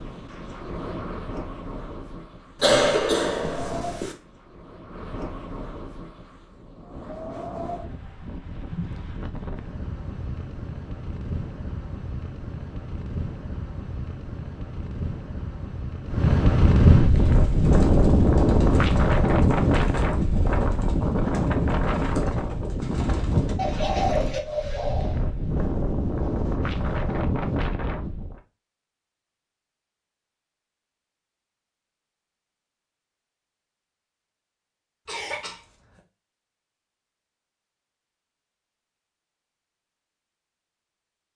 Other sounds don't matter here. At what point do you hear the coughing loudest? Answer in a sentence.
The volume of the coughing peaks at 3 seconds.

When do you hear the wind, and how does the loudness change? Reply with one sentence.
You can hear the wind from 0.0 to 28.4 s, getting louder then quieter.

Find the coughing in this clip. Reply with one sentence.
The coughing can be heard from 2.6 to 4.2 s and from 35.0 to 36.0 s.